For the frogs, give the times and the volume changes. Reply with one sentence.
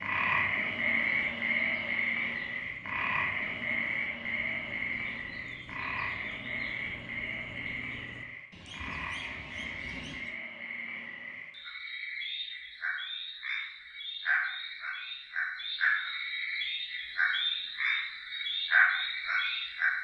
You can hear the frogs from 0.0 to 20.0 s, getting quieter then louder.